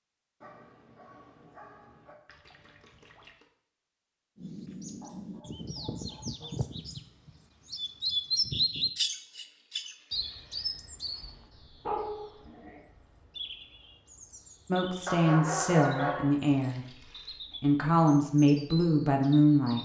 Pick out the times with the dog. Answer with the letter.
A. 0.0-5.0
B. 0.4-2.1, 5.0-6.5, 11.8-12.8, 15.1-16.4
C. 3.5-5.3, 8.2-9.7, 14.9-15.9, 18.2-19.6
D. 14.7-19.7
B.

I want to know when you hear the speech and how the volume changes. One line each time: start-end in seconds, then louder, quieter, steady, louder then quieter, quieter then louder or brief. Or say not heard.
14.7-19.7 quieter then louder.